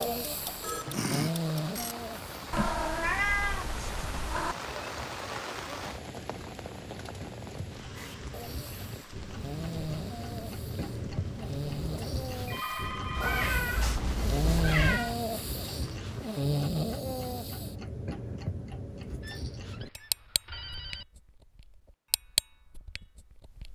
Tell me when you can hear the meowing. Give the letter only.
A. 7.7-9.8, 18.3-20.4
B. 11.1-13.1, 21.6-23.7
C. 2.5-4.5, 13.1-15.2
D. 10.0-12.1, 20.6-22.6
C.